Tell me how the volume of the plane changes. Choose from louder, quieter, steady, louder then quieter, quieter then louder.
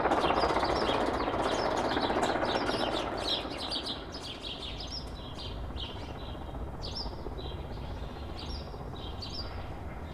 quieter.